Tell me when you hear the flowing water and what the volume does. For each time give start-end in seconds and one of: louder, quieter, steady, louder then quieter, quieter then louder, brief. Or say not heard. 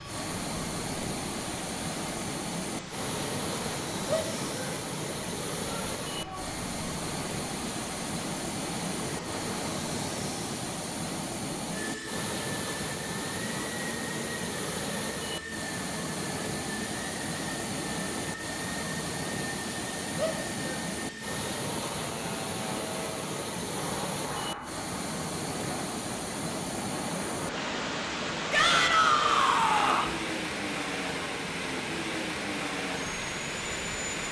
0.0-34.2 steady.